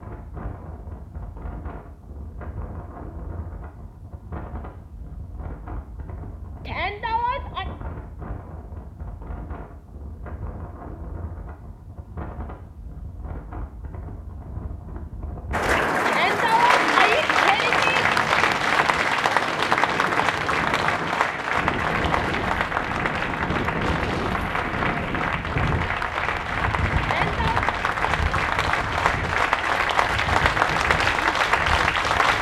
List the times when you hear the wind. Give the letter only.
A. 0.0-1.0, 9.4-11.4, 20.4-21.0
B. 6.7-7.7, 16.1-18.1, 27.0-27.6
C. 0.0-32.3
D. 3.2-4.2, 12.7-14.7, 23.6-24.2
C.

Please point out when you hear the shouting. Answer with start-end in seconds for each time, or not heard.
6.7-7.7, 16.1-18.1, 27.0-27.6.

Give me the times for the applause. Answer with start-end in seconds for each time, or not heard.
15.5-32.3.